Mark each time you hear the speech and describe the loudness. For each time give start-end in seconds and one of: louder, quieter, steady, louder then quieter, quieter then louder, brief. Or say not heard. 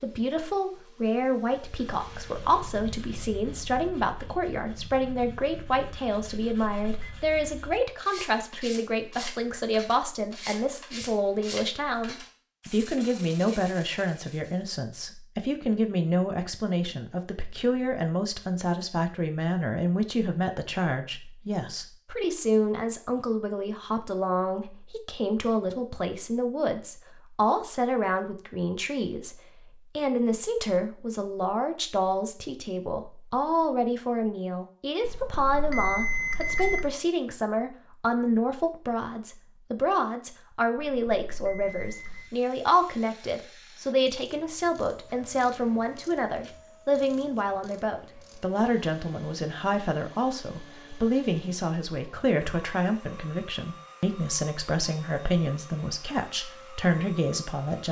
0.0-57.8 steady.